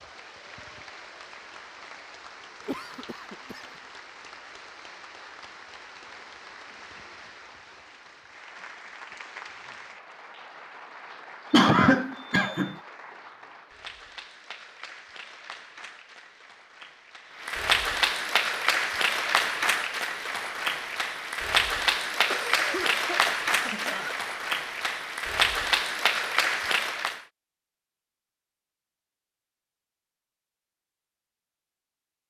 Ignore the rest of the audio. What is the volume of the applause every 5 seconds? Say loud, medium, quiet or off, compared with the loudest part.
quiet, quiet, quiet, loud, loud, loud, off.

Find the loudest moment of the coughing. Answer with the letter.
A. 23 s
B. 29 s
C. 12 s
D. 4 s
C.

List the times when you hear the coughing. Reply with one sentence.
The coughing can be heard from 2.6 to 3.6 s, from 11.5 to 12.8 s and from 22.2 to 24.1 s.